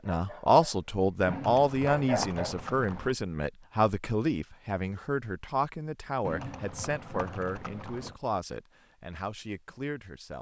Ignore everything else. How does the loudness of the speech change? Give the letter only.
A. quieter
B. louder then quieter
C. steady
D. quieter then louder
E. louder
A.